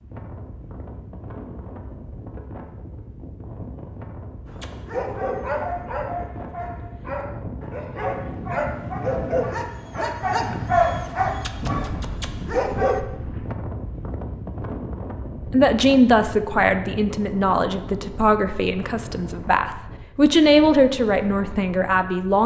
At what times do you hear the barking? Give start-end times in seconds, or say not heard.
4.5-13.0.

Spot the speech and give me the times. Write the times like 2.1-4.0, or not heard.
15.5-22.4.